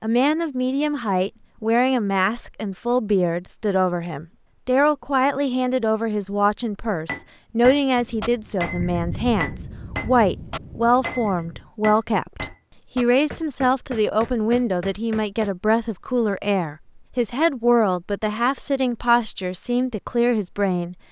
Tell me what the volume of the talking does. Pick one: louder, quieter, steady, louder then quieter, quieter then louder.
steady.